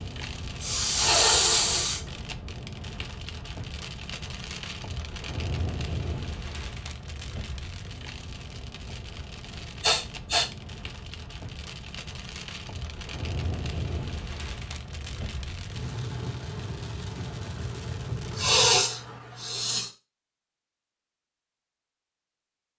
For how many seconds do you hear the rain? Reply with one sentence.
The rain can be heard for 19 seconds in total.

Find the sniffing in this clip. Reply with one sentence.
The sniffing can be heard from 0.6 to 2.0 s, from 9.8 to 10.4 s and from 18.4 to 19.9 s.